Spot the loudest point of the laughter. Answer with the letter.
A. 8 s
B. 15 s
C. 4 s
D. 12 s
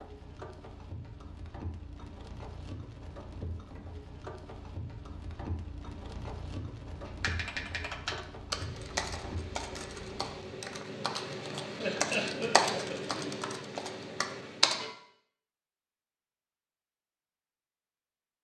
D.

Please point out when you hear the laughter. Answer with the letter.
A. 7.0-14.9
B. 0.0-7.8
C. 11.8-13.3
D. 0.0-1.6
C.